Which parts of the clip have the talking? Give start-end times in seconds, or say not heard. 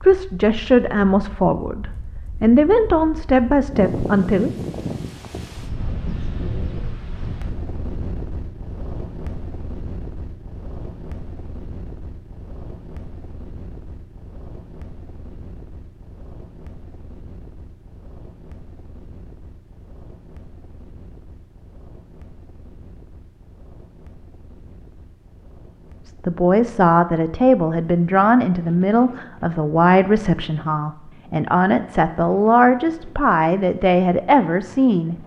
0.0-4.5, 26.1-35.1.